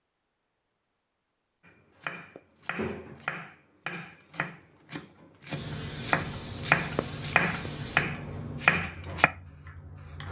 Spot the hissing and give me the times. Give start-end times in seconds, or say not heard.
5.5-10.2.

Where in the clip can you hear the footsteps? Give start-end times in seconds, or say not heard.
not heard.